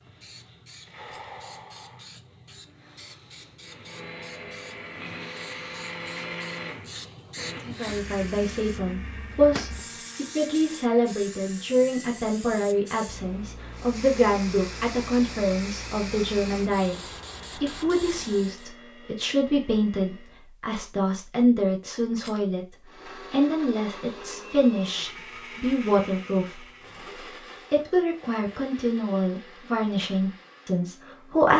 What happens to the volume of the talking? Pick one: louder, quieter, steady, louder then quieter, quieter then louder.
steady.